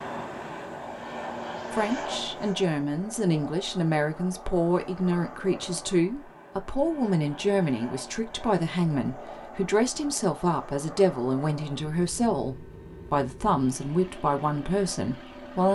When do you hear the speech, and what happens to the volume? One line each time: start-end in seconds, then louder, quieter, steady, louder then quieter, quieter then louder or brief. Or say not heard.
1.7-15.6 steady.